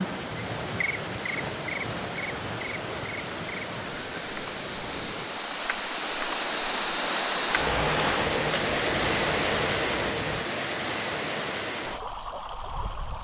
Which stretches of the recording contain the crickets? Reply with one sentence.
The crickets can be heard from 0.0 to 10.4 s.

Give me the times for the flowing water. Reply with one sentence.
You can hear the flowing water from 0.0 to 13.1 s.